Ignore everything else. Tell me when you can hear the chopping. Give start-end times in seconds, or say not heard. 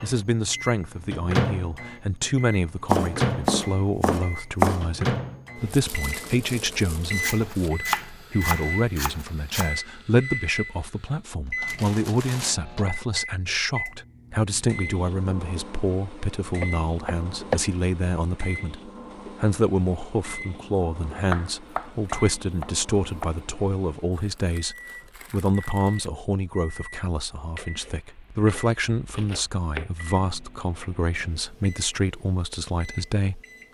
2.9-4.8, 7.2-9.7, 16.4-17.6, 21.2-23.4, 27.6-29.9.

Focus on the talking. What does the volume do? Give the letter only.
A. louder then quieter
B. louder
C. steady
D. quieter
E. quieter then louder
C.